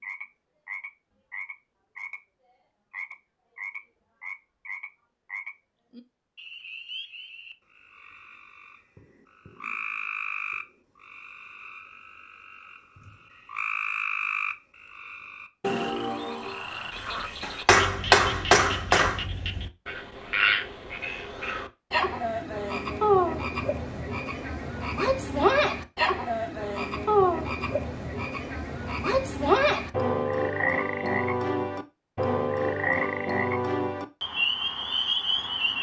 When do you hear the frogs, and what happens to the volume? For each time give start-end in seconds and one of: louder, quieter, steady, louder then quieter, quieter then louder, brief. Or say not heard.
0.0-2.2 brief
2.9-35.7 louder.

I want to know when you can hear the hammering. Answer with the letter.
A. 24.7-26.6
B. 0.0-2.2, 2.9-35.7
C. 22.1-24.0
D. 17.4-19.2
D.